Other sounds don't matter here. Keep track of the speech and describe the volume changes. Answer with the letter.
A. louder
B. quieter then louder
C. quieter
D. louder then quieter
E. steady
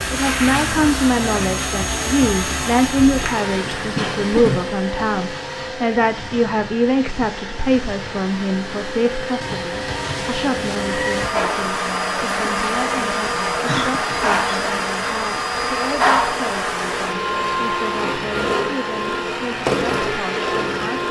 C.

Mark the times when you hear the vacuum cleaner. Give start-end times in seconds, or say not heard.
0.0-21.0.